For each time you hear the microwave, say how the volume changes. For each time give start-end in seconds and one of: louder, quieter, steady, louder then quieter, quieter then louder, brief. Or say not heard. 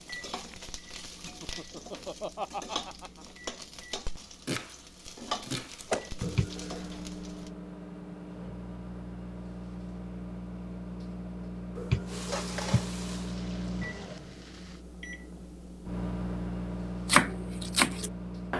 0.0-18.5 louder.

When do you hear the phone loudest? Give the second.
12 s.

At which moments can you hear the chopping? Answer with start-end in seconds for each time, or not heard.
4.2-4.8, 5.4-7.0, 17.1-18.5.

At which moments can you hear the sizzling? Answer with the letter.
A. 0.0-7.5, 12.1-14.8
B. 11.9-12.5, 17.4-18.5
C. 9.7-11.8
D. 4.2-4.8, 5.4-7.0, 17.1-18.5
A.